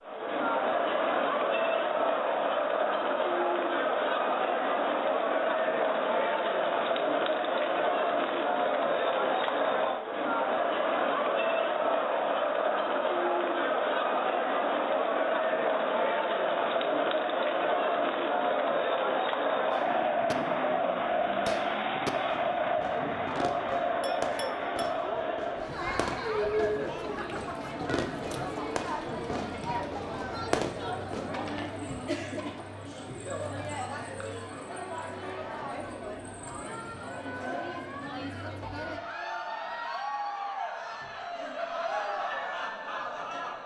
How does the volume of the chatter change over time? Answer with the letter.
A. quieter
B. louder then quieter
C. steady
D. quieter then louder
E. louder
A.